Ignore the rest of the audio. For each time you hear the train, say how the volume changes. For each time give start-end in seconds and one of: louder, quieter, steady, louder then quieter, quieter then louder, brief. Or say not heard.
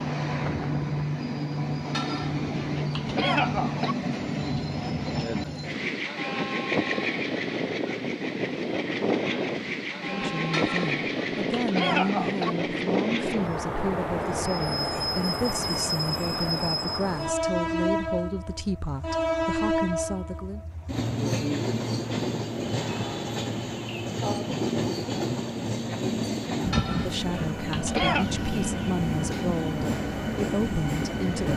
0.0-31.5 steady.